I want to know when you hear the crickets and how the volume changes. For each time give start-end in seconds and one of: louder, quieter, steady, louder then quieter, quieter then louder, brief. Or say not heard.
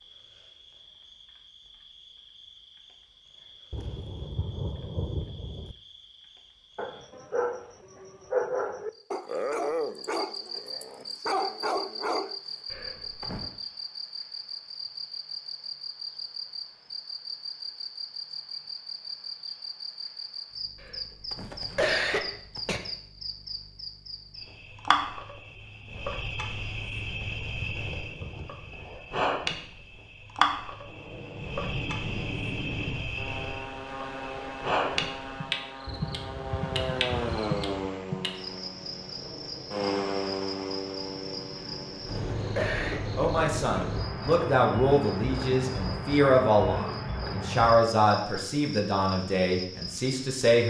0.0-50.6 louder.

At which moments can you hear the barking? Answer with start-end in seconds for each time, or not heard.
6.8-12.3.